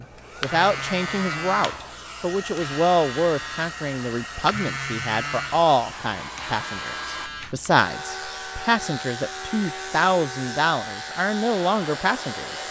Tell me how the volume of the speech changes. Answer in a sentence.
The volume of the speech stays about the same.